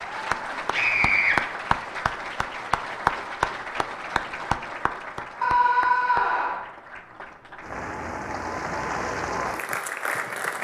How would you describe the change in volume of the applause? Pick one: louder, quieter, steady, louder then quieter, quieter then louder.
quieter then louder.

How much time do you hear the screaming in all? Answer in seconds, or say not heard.
2 s.